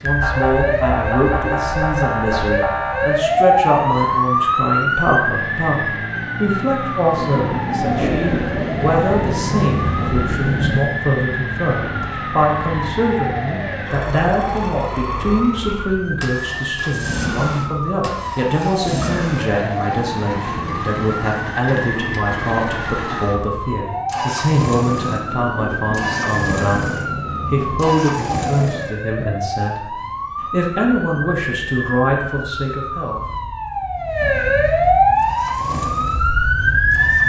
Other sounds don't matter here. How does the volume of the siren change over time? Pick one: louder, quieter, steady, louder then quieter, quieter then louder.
quieter then louder.